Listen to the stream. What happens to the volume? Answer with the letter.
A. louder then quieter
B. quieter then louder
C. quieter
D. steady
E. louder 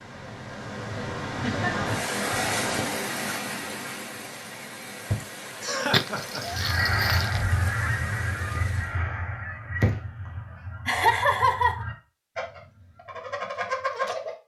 C.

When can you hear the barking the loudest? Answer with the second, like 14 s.
6 s.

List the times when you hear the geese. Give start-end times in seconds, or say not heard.
6.5-14.3.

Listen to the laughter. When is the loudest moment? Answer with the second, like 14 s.
11 s.